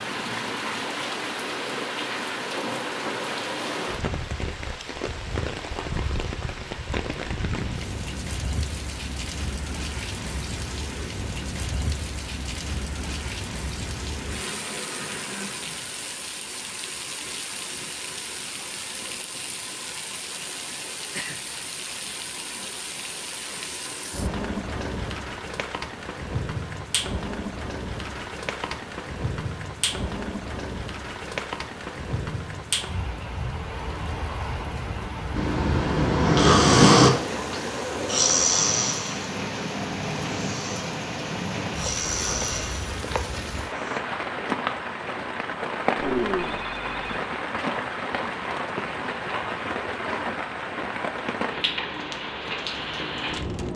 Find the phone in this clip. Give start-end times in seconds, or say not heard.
46.0-47.1.